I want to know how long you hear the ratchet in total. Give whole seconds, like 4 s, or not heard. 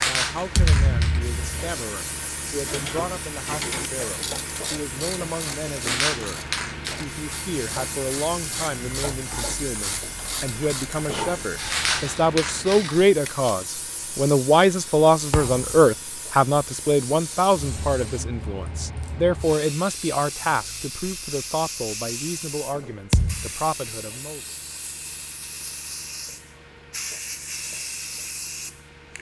11 s.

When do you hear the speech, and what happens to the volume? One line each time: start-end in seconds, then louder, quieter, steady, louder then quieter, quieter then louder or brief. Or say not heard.
0.0-6.4 steady
7.0-24.4 louder then quieter.